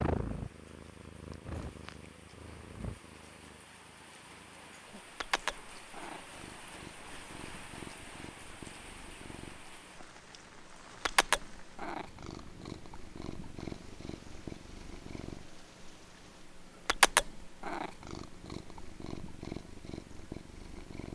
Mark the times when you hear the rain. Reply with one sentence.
The rain can be heard from 0.0 to 16.5 s.